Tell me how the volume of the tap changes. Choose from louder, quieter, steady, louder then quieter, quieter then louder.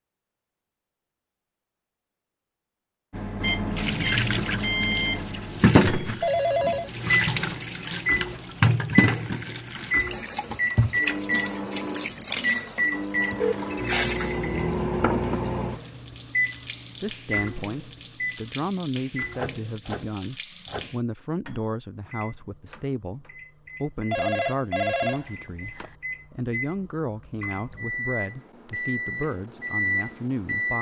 quieter.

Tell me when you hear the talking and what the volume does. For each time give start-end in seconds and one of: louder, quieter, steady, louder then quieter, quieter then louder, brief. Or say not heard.
17.0-30.7 steady.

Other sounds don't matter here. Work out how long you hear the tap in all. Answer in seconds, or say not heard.
17 s.